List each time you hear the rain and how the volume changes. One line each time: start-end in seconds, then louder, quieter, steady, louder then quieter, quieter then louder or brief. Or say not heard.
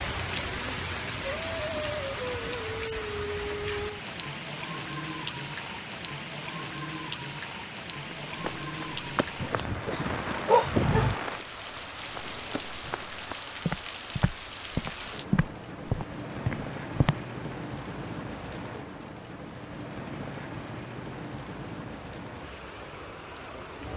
0.0-23.9 quieter.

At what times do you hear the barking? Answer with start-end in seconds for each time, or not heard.
9.4-11.1.